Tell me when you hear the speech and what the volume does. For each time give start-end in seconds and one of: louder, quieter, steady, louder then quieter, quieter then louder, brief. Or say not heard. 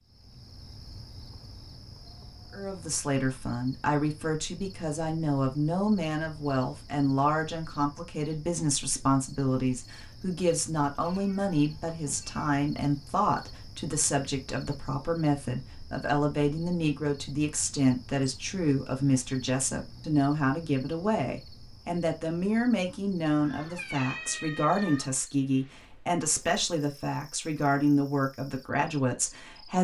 2.5-29.8 steady.